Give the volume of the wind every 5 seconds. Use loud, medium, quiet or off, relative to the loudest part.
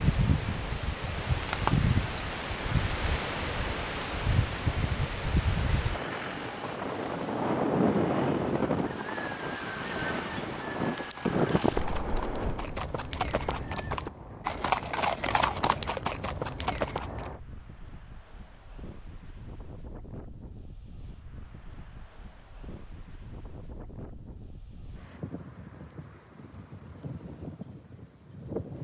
loud, loud, loud, quiet, quiet, quiet.